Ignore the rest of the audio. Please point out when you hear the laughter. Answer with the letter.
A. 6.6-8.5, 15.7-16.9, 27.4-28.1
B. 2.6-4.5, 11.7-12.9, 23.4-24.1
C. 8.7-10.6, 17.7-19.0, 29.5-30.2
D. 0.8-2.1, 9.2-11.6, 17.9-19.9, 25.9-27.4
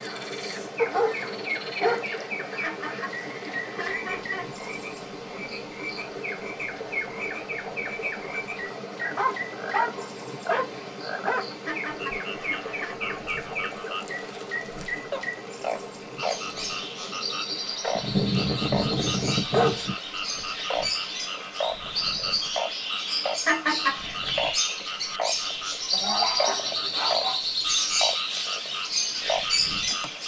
B.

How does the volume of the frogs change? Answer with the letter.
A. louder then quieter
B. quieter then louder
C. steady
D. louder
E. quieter
D.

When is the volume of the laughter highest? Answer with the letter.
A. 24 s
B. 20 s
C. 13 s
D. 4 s
A.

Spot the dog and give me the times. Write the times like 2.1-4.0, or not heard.
0.8-2.1, 9.2-11.6, 17.9-19.9, 25.9-27.4.